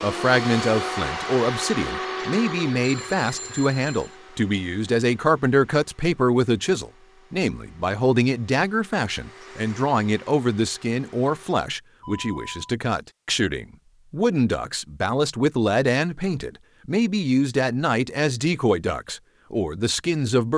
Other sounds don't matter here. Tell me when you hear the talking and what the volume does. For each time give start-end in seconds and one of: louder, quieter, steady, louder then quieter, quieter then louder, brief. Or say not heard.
0.0-20.5 steady.